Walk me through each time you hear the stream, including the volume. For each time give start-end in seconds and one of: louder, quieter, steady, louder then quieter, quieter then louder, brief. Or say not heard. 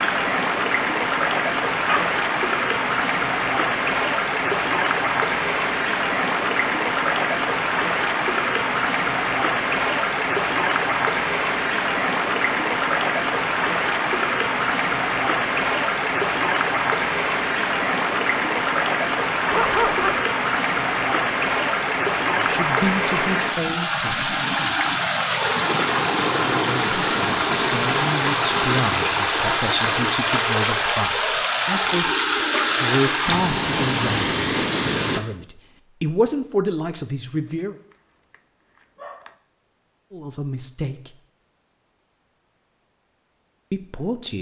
0.0-35.2 steady.